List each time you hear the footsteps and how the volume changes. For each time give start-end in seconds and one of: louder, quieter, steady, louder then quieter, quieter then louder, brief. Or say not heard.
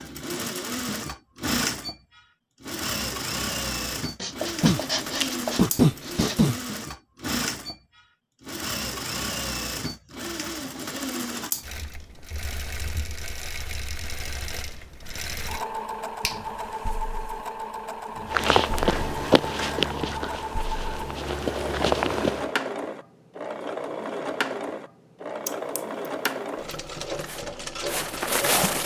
18.2-22.5 quieter then louder
27.1-28.8 brief.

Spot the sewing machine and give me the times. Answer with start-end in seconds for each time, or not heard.
0.0-28.8.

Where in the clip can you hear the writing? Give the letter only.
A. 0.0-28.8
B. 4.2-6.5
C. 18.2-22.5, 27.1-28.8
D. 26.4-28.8
B.